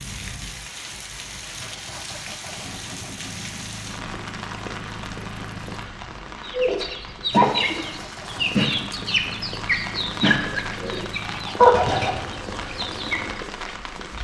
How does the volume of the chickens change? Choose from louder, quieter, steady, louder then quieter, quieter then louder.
quieter then louder.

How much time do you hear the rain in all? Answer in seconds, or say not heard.
14 s.